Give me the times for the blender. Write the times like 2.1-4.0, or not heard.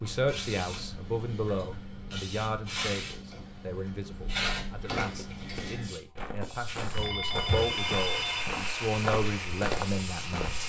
7.5-10.6.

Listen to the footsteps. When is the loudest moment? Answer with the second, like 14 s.
10 s.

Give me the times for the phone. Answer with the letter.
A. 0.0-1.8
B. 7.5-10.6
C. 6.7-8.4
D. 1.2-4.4
C.